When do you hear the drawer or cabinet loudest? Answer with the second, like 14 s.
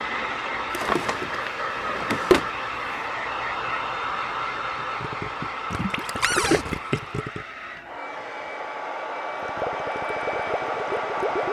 2 s.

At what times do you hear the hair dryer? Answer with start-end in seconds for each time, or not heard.
0.0-11.4.